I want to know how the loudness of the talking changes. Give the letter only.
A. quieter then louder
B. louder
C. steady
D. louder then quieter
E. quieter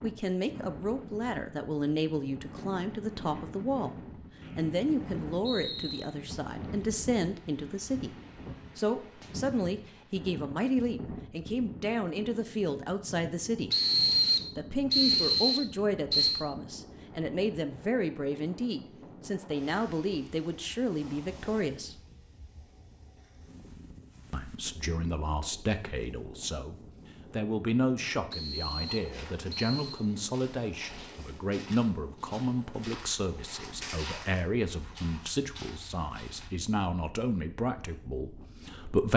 C.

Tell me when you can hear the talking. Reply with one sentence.
The talking can be heard from 0.0 to 4.0 s, from 4.5 to 8.1 s, from 8.8 to 13.8 s, from 14.6 to 22.0 s and from 24.3 to 39.1 s.